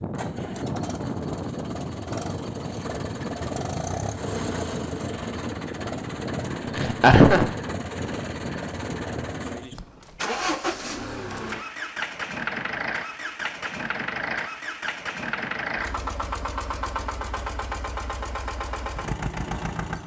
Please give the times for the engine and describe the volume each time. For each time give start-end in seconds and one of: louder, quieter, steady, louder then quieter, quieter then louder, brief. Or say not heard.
0.0-20.0 steady.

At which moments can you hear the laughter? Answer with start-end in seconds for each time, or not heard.
6.8-7.5.